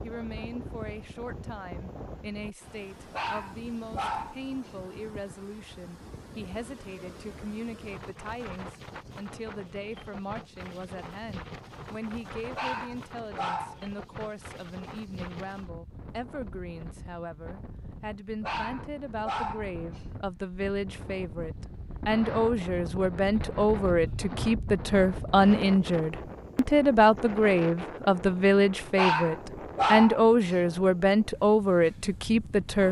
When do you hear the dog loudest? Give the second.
30 s.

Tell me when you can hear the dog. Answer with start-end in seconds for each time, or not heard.
3.1-4.8, 12.5-13.8, 18.4-20.1, 28.9-30.6.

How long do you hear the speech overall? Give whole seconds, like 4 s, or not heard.
33 s.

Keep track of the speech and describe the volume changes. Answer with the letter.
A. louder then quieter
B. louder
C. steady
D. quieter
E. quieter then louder
B.